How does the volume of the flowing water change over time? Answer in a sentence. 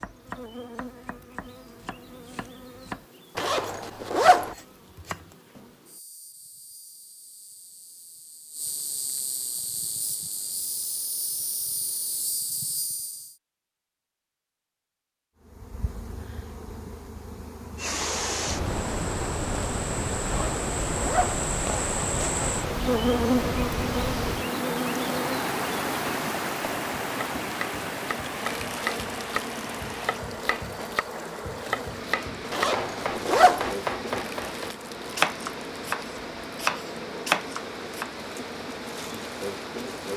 The volume of the flowing water goes down.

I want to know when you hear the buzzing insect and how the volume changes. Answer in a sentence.
You can hear the buzzing insect from 0.0 to 13.3 s, getting quieter then louder; and from 15.4 to 40.1 s, getting louder then quieter.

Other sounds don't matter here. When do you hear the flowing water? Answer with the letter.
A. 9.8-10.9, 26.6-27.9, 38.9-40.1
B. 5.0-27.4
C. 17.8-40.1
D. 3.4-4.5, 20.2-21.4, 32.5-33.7
C.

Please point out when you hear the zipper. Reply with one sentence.
The zipper can be heard from 3.4 to 4.5 s, from 20.2 to 21.4 s and from 32.5 to 33.7 s.